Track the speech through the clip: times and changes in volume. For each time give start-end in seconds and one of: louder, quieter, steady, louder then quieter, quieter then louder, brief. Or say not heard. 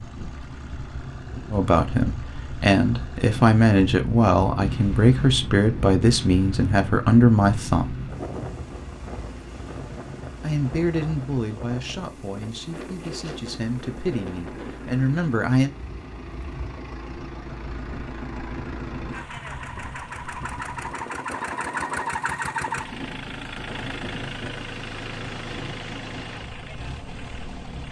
1.5-8.0 steady
10.4-15.7 quieter then louder.